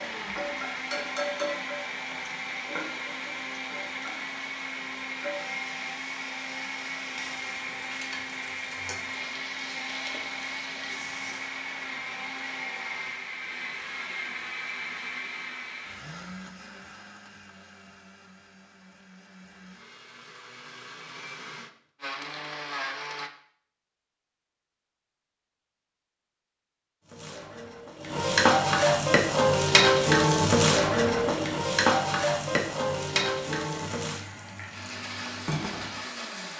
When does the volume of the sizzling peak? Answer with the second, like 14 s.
30 s.